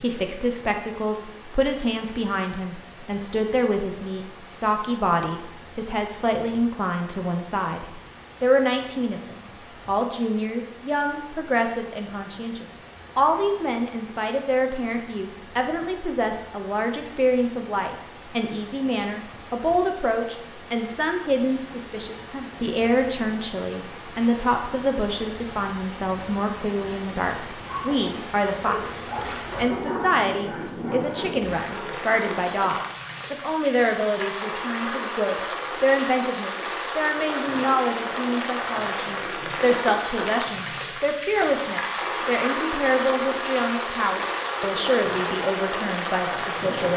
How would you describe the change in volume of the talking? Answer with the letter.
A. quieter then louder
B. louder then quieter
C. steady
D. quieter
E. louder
C.